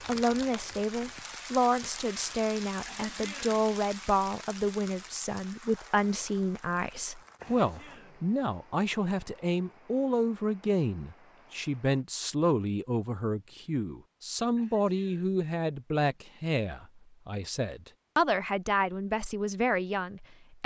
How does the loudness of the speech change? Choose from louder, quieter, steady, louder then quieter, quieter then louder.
steady.